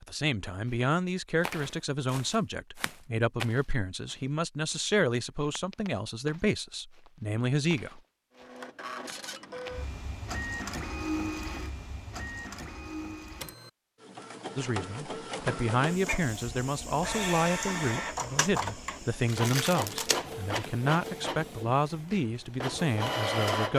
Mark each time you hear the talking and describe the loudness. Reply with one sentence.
You can hear the talking from 0.0 to 8.0 s, at a steady volume; and from 14.6 to 23.7 s, at a steady volume.